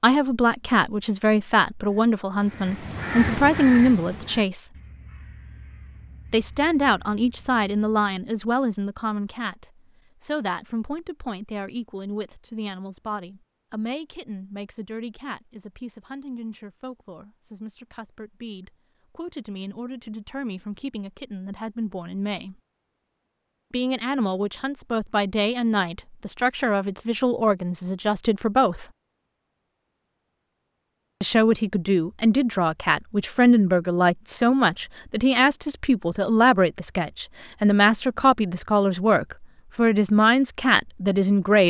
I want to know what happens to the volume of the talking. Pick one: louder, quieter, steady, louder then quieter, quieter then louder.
quieter then louder.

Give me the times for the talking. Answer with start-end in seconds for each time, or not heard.
0.0-4.7, 6.3-22.6, 23.7-28.9, 31.2-41.6.